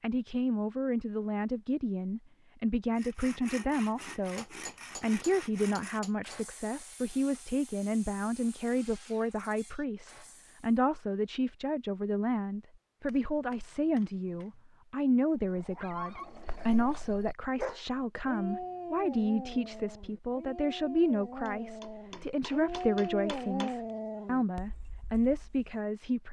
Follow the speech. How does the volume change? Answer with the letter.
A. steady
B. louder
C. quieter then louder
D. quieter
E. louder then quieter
A.